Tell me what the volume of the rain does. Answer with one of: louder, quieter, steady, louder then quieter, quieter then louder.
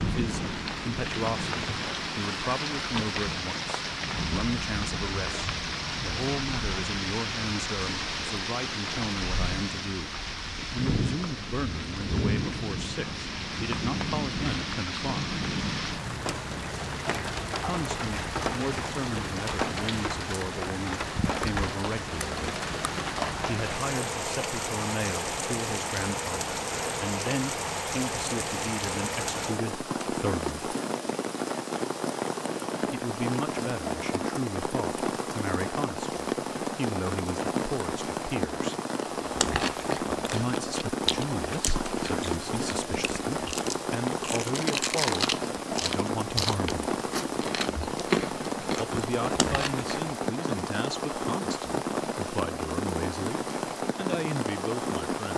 steady.